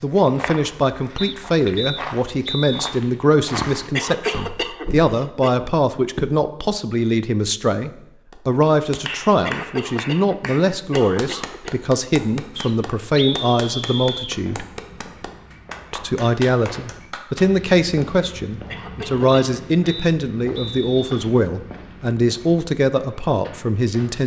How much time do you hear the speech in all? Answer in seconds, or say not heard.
23 s.